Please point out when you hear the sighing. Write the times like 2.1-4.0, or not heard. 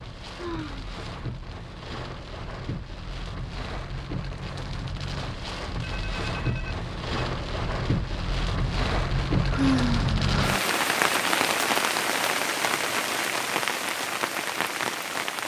0.3-0.8, 9.5-10.8.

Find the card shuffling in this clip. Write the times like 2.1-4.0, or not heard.
not heard.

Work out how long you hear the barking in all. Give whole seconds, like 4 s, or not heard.
not heard.